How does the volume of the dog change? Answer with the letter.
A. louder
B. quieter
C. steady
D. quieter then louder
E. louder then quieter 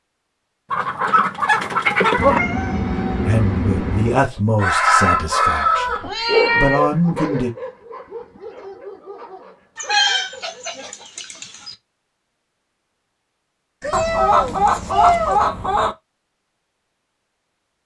B.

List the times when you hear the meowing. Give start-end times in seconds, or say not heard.
2.1-4.3, 6.0-6.8, 13.8-15.4.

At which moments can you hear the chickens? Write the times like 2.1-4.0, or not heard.
0.7-2.4, 4.5-6.4, 9.8-11.8, 13.9-15.9.